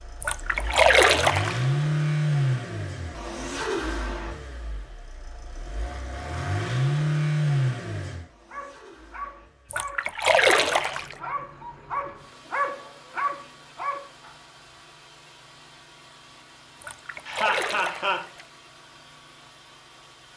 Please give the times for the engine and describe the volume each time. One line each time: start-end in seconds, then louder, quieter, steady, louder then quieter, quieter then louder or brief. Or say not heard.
0.0-20.3 quieter.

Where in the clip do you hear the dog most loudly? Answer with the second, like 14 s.
13 s.